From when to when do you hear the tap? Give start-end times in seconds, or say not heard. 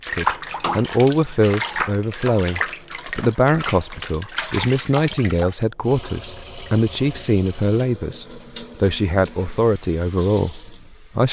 0.0-11.2.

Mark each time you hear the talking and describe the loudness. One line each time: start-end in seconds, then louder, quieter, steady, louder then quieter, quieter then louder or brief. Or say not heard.
0.1-11.2 steady.